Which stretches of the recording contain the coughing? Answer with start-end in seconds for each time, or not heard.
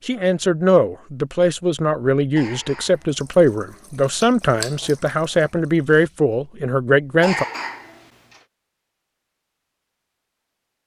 2.4-3.2, 7.2-8.4.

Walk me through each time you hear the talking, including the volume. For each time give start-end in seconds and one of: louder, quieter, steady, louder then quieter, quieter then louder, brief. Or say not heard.
0.1-7.5 steady.